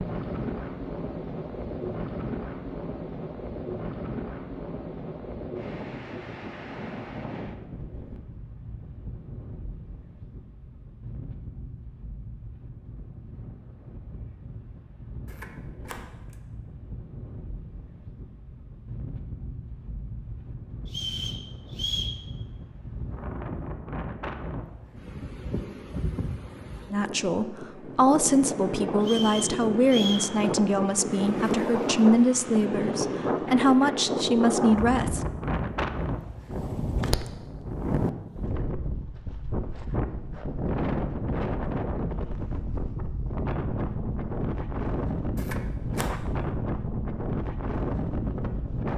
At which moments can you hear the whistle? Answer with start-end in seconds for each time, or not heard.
20.9-22.1, 29.0-30.2.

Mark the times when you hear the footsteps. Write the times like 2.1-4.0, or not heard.
not heard.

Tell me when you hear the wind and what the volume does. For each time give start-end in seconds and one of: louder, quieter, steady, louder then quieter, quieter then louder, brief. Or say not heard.
0.0-48.9 quieter then louder.